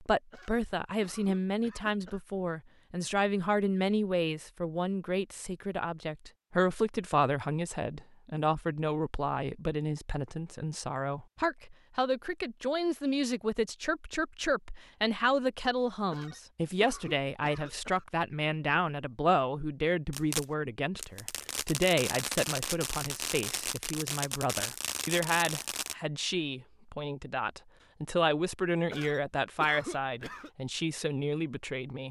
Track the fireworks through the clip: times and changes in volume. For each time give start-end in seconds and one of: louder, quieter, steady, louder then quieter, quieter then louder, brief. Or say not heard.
20.1-25.9 louder.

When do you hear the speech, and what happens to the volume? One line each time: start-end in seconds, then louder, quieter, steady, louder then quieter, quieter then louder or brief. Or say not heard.
0.0-32.0 steady.